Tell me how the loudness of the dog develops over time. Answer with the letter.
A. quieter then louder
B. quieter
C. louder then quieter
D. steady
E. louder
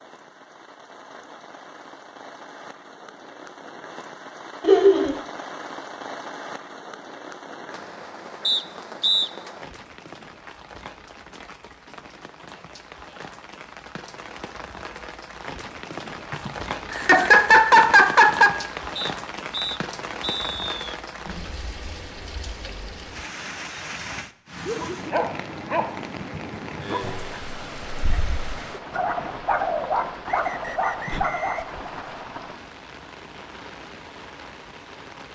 A.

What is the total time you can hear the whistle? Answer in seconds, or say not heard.
5 s.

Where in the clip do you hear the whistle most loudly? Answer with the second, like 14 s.
9 s.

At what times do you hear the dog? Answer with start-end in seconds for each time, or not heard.
24.6-31.8.